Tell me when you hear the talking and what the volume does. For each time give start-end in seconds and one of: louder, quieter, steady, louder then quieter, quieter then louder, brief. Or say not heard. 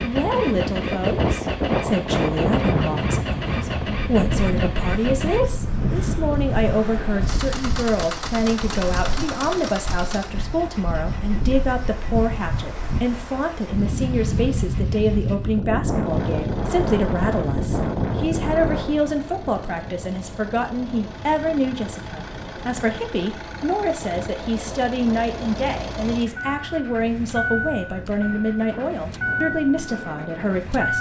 0.0-30.9 steady.